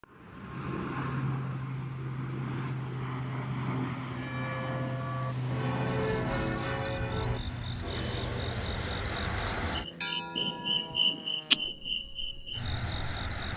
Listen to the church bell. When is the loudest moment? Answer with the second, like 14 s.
6 s.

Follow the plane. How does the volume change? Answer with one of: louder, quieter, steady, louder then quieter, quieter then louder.
quieter.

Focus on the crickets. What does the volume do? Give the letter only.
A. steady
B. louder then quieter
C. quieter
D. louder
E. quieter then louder
D.